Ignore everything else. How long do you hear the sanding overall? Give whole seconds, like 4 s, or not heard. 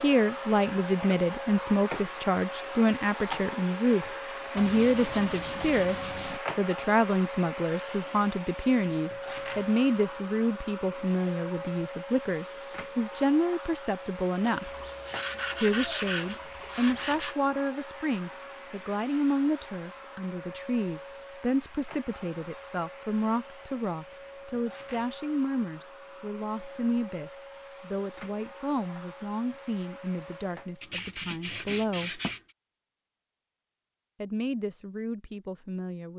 6 s.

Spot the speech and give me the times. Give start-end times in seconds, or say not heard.
0.0-14.7, 15.6-32.2, 34.2-36.1.